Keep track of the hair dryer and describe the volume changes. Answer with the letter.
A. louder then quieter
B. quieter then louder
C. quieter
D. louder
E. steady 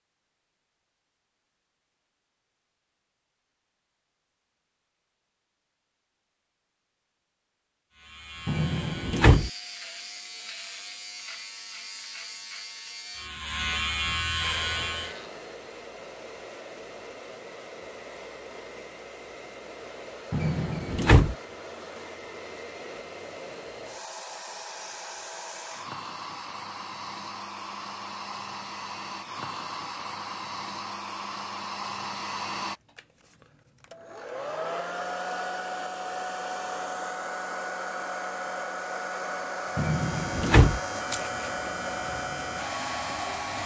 D.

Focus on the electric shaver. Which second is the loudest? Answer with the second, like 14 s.
14 s.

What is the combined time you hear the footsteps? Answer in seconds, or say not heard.
not heard.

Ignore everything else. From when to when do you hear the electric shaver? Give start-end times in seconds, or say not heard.
7.9-15.3, 39.8-43.6.